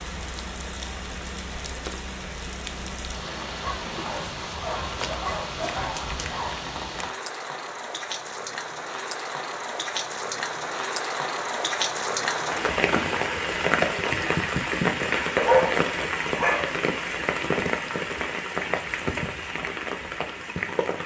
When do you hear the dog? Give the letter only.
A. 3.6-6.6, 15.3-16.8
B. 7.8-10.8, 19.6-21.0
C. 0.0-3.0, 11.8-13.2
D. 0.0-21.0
A.